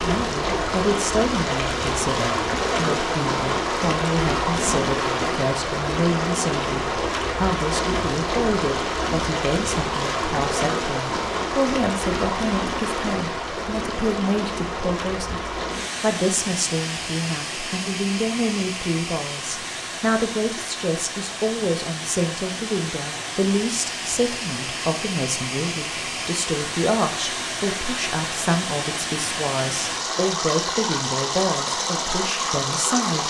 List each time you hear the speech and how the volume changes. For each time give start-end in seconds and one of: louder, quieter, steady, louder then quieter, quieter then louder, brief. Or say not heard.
0.0-33.2 steady.